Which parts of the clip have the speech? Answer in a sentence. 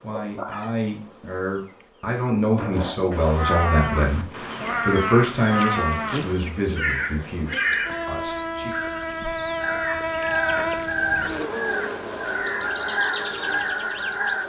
You can hear the speech from 0.0 to 8.8 s.